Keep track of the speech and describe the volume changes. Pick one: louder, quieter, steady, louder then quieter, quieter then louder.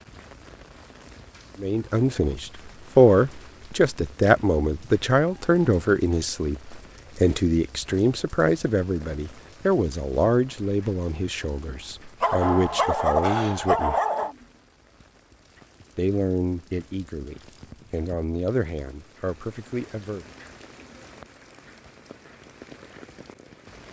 quieter.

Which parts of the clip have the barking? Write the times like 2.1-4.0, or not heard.
12.2-14.3.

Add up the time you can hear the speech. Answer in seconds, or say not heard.
17 s.